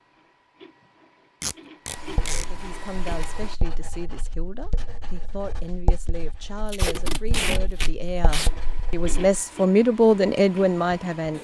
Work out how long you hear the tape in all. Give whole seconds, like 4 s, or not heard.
3 s.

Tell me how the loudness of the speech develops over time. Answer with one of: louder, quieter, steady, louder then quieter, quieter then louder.
louder.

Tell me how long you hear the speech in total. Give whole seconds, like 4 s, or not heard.
9 s.